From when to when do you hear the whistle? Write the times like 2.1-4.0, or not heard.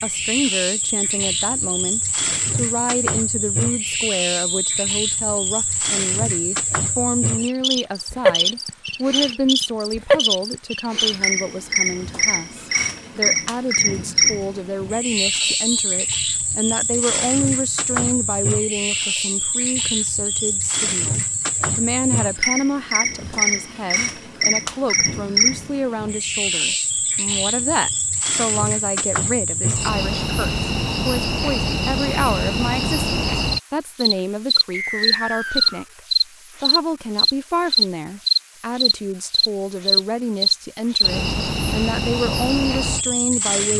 4.3-4.9, 15.2-16.0, 34.7-35.9.